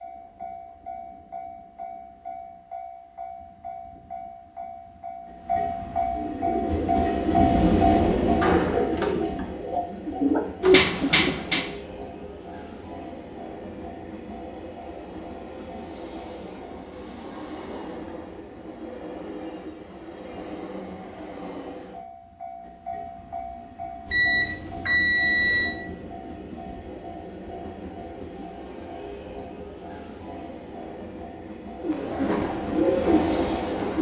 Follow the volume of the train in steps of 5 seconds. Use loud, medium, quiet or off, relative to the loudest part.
quiet, loud, quiet, quiet, quiet, quiet, medium.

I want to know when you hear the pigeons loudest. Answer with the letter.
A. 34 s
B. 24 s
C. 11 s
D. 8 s
C.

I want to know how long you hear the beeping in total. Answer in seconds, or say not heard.
2 s.